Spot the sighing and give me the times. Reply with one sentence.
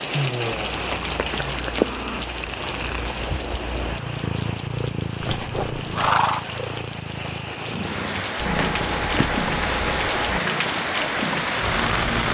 The sighing can be heard from 0.1 to 1.6 s.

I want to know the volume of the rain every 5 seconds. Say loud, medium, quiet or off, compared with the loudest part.
medium, medium, loud.